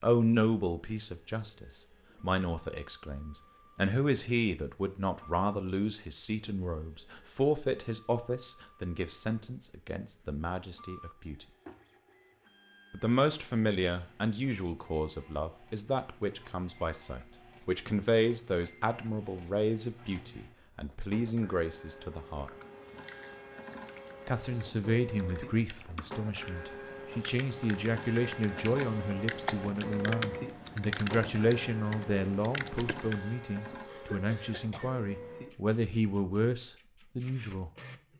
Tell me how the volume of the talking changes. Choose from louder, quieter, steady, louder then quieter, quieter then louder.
steady.